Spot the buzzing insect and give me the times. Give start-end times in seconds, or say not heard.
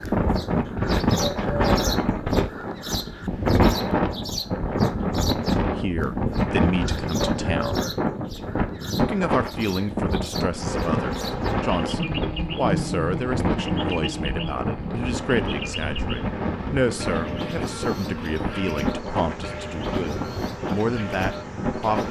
10.6-22.0.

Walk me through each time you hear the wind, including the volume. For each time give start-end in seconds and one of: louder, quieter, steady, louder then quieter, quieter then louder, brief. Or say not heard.
0.0-22.0 quieter.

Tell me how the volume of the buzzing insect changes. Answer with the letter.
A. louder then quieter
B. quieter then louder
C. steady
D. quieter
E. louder
D.